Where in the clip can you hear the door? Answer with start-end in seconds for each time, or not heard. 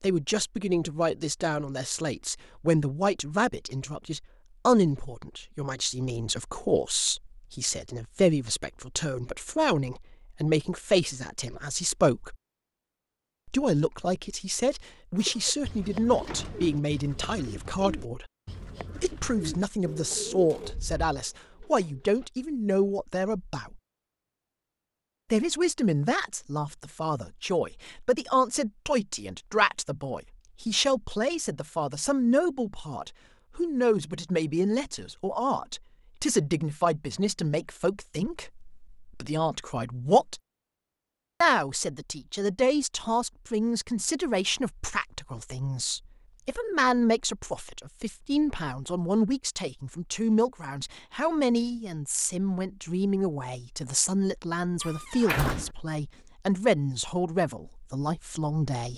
15.8-16.9, 20.6-21.1, 54.8-55.7.